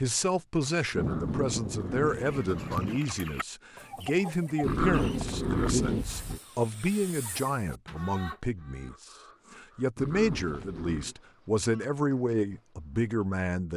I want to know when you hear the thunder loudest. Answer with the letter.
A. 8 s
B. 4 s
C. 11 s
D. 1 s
D.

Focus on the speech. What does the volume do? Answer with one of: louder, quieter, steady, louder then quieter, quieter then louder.
steady.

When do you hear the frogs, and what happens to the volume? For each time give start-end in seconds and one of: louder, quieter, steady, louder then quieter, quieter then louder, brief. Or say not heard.
not heard.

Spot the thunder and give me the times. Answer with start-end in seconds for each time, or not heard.
0.9-3.0.